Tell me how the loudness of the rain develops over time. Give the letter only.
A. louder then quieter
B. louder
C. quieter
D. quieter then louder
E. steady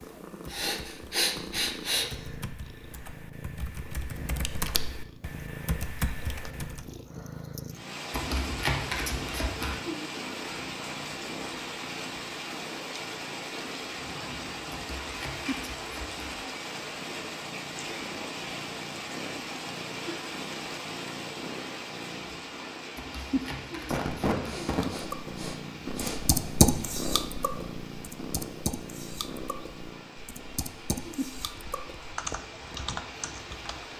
C.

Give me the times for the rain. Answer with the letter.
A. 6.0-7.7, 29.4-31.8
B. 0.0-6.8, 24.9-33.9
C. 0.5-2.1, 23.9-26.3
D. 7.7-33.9
D.